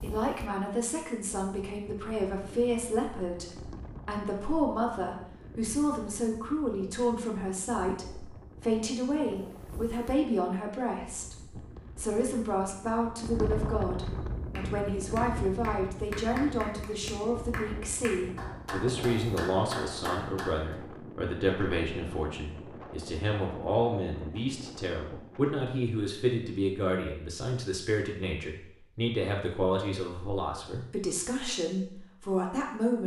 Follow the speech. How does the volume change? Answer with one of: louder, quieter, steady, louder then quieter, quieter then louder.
steady.